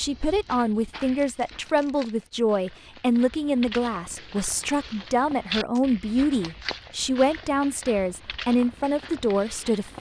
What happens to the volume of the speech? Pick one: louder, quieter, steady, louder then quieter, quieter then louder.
steady.